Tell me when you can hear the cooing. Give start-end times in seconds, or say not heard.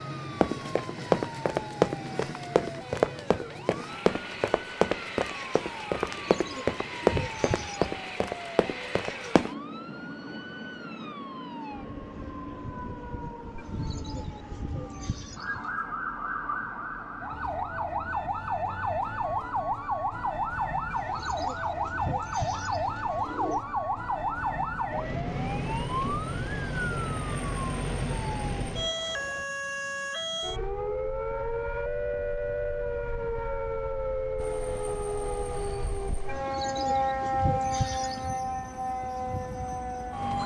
6.0-8.0, 13.6-15.7, 20.9-23.6, 36.2-38.4.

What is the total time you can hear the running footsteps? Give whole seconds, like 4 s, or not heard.
9 s.